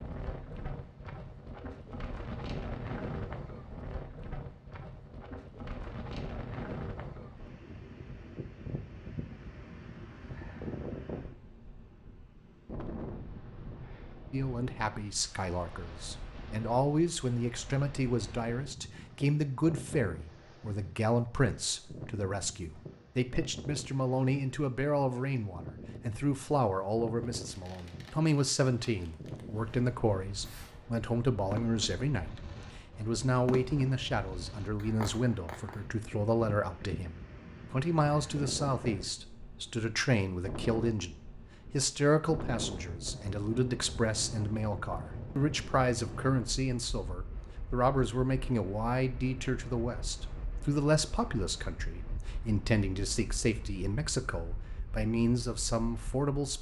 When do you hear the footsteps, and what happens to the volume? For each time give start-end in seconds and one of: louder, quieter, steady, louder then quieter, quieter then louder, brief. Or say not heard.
not heard.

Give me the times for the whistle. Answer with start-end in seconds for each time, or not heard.
not heard.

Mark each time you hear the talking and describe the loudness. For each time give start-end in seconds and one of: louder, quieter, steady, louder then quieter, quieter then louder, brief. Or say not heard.
14.3-56.5 steady.